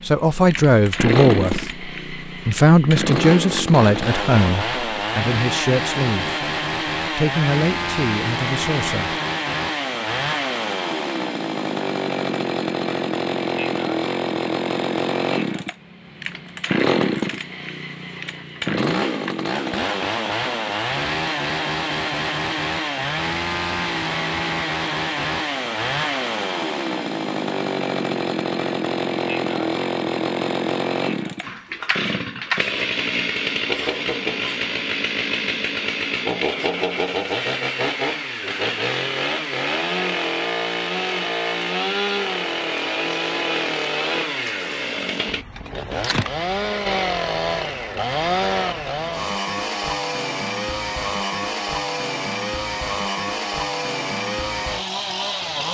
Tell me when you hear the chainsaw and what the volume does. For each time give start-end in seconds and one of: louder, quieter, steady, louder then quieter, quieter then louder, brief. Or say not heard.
0.0-55.6 steady.